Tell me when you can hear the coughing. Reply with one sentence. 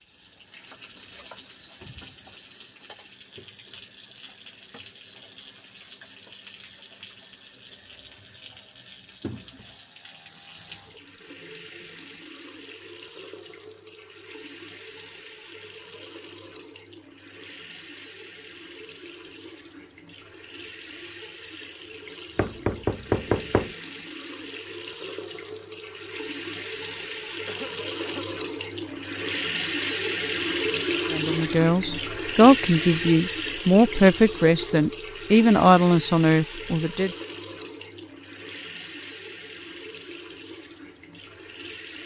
The coughing can be heard from 27.4 to 28.2 s.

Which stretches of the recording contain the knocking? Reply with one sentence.
The knocking can be heard from 22.4 to 23.8 s.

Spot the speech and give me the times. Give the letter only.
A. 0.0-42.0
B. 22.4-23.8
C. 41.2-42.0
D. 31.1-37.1
D.